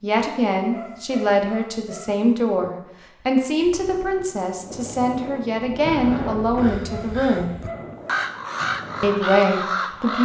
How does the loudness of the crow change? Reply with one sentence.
The loudness of the crow goes up.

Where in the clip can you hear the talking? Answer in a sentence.
You can hear the talking from 0.0 to 7.5 s and from 9.0 to 10.1 s.